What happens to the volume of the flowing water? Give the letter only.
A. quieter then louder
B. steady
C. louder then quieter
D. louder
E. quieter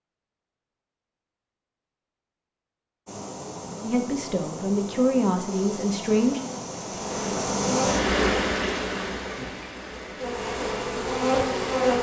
C.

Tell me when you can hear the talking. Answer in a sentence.
The talking can be heard from 3.8 to 6.4 s.